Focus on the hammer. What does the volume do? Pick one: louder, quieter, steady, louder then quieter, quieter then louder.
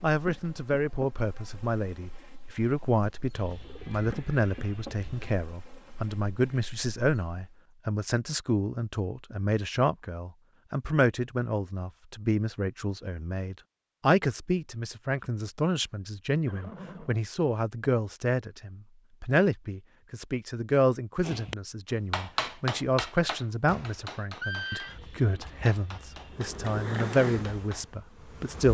quieter.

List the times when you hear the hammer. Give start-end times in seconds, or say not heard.
21.2-27.9.